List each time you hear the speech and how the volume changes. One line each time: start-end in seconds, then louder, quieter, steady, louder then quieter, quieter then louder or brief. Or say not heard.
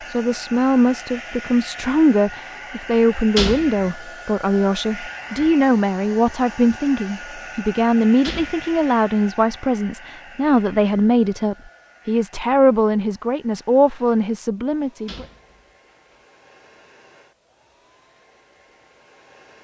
0.1-15.2 steady.